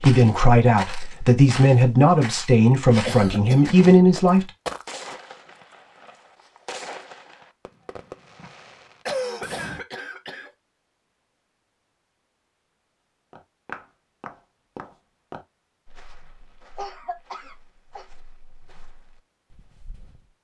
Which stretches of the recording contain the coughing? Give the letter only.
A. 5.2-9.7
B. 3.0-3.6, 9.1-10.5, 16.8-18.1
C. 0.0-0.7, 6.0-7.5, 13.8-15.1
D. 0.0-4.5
B.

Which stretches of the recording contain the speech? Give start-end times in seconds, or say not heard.
0.0-4.5.